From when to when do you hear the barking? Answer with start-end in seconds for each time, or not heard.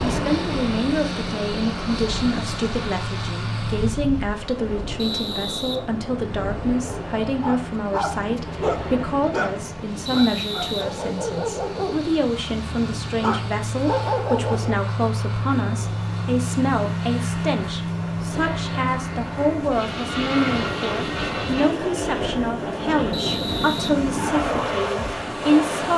6.8-14.8.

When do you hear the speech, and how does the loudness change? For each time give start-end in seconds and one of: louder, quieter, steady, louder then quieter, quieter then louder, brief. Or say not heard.
0.0-25.9 steady.